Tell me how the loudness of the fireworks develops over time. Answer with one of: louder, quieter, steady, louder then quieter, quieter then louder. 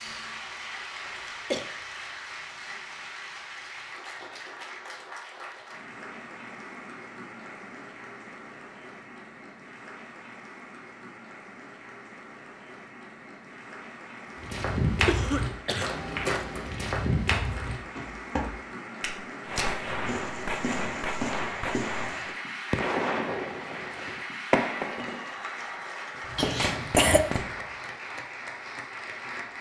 steady.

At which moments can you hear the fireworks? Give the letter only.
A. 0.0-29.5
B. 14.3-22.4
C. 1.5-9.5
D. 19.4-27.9
D.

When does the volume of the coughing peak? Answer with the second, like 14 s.
27 s.